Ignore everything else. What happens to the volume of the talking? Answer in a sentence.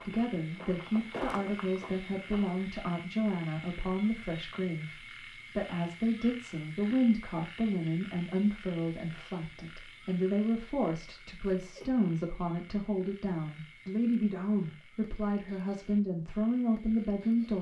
The volume of the talking stays about the same.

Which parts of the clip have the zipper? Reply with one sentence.
The zipper can't be heard in this clip.